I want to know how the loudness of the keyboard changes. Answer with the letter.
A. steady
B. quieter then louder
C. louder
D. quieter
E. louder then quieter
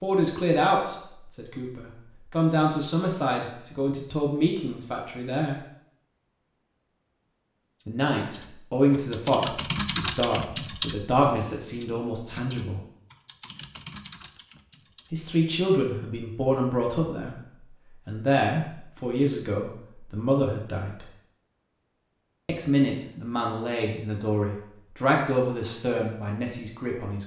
E.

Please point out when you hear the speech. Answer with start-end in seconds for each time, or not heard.
0.0-5.5, 7.8-12.8, 15.1-21.1, 22.4-27.2.